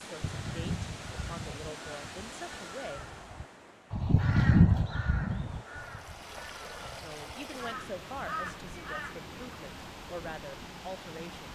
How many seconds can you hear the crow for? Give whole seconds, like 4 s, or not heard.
9 s.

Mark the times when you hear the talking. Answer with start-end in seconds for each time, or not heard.
0.0-3.0, 7.0-11.4.